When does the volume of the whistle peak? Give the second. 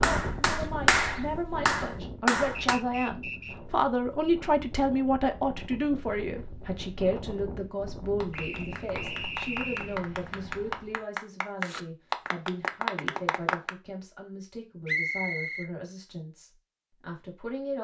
15 s.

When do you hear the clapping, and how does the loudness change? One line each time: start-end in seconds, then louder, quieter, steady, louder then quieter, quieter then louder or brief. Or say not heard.
0.0-2.8 brief
8.2-13.7 louder.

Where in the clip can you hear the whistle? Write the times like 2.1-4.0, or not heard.
2.6-3.6, 8.3-9.9, 14.8-15.7.